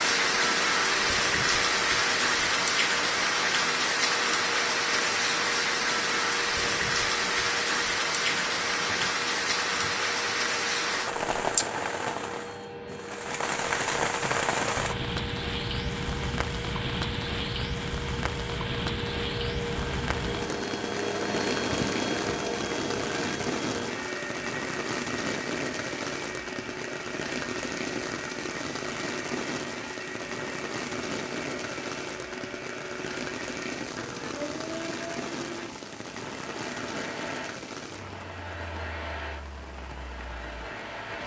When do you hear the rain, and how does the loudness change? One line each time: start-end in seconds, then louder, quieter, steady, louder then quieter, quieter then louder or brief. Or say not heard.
0.0-41.2 quieter.